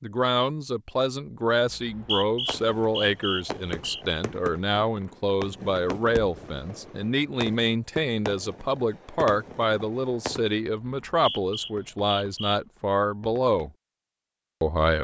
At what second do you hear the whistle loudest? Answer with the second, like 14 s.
2 s.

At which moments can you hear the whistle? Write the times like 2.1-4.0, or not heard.
1.7-4.0, 10.8-12.6.